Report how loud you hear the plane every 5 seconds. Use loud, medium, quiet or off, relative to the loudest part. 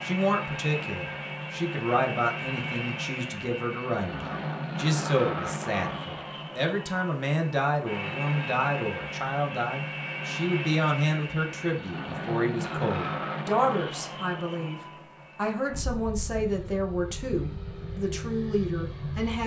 loud, loud, loud, medium.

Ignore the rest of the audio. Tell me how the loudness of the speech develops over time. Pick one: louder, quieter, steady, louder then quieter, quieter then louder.
steady.